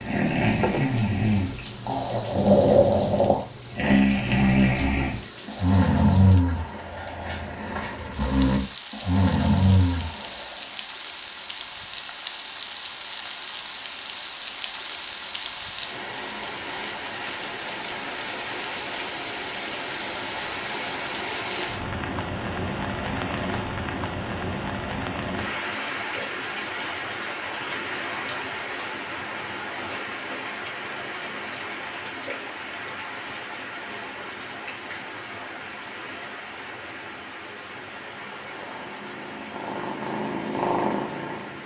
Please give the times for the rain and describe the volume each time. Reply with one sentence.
The rain can be heard from 0.0 to 41.6 s, getting louder then quieter.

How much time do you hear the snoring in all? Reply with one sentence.
The snoring can be heard for 11 seconds in total.